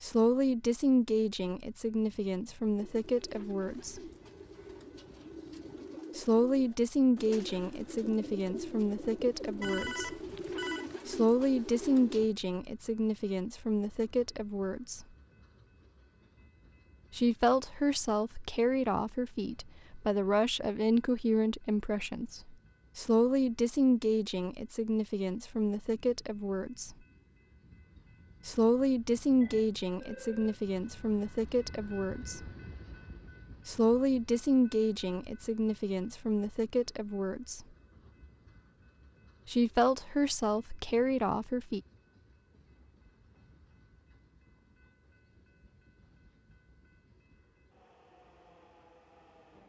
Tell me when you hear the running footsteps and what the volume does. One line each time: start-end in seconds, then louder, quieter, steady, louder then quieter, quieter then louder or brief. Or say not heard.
not heard.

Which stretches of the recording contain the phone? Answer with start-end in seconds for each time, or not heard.
9.6-10.8, 29.4-30.6.